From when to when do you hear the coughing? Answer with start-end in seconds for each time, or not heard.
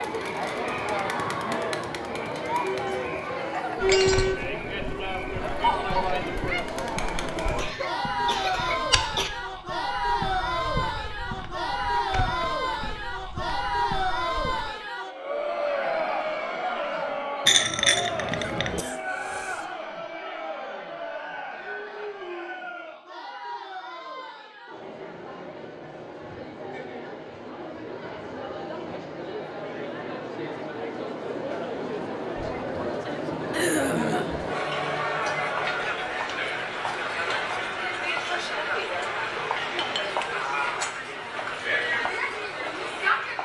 7.5-9.3, 18.4-19.6, 33.5-34.5.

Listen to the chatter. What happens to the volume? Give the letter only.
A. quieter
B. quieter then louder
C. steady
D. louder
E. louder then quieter
B.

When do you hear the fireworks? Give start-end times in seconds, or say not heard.
not heard.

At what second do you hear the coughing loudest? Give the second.
34 s.